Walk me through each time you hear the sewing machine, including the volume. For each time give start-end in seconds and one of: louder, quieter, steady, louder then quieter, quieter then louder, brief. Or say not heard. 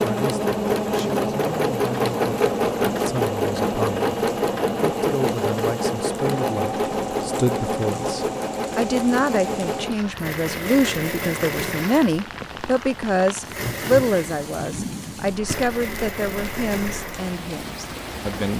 0.0-18.5 quieter.